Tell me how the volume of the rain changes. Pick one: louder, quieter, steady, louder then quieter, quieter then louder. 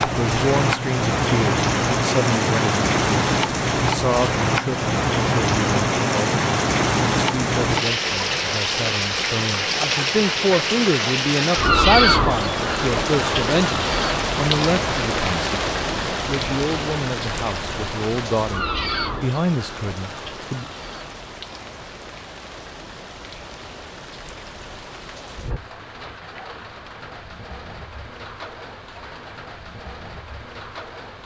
quieter.